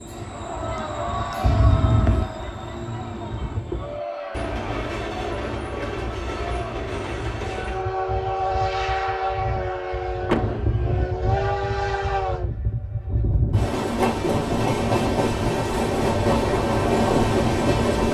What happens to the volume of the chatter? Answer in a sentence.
The volume of the chatter goes down.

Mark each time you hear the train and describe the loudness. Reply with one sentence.
You can hear the train from 0.0 to 18.0 s, getting louder.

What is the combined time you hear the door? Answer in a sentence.
The door can be heard for 2 seconds in total.